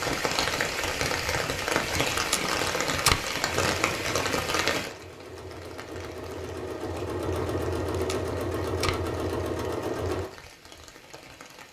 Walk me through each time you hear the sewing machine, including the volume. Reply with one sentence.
The sewing machine can be heard from 3.5 to 10.3 s, getting louder.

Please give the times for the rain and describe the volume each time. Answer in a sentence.
The rain can be heard from 0.0 to 11.6 s, getting quieter.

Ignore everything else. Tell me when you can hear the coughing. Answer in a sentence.
You can't hear the coughing here.